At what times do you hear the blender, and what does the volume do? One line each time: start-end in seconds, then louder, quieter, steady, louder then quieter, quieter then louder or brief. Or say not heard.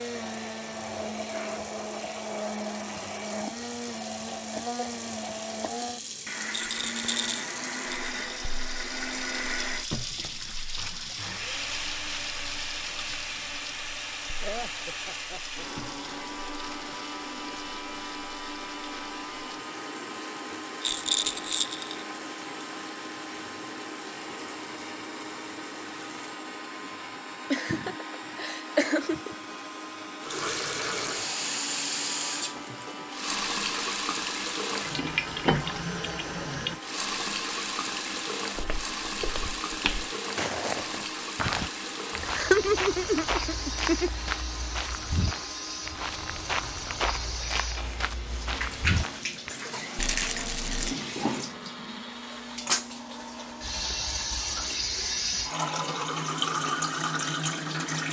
0.0-58.0 quieter.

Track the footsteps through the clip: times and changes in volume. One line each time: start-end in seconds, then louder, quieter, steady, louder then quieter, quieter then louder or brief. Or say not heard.
38.5-49.5 steady.